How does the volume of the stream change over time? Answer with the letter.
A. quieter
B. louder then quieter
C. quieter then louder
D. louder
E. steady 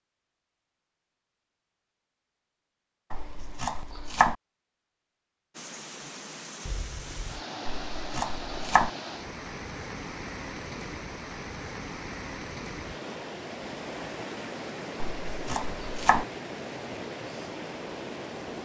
E.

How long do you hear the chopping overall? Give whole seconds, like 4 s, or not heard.
4 s.